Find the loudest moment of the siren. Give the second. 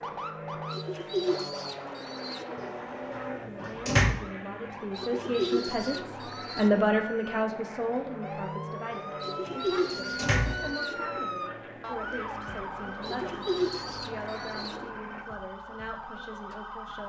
11 s.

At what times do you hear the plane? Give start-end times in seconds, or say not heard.
0.0-15.2.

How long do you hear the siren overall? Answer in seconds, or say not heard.
17 s.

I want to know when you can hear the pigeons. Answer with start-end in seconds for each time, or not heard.
0.7-2.5, 5.0-6.8, 9.2-11.1, 13.0-14.9.